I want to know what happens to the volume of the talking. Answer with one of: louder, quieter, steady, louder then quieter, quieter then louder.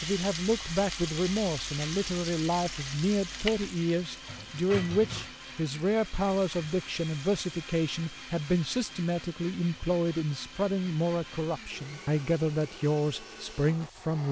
steady.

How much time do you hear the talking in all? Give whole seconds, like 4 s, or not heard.
14 s.